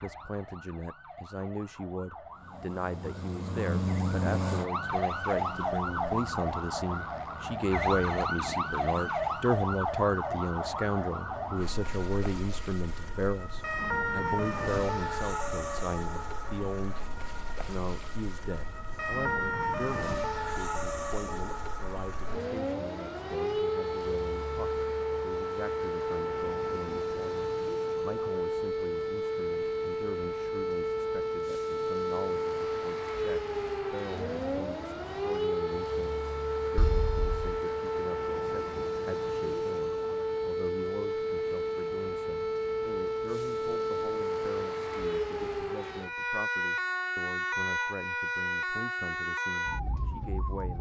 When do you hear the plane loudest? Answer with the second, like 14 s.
4 s.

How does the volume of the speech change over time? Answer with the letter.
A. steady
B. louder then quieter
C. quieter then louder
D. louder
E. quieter
E.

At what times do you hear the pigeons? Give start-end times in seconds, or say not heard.
not heard.